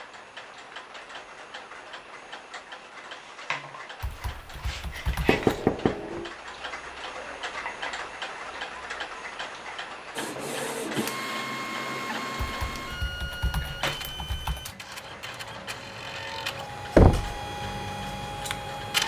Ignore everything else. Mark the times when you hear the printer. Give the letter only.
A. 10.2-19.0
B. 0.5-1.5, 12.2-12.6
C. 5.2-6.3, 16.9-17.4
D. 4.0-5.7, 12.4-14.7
A.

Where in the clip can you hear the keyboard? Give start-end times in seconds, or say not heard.
4.0-5.7, 12.4-14.7.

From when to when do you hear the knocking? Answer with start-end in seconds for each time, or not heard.
5.2-6.3, 16.9-17.4.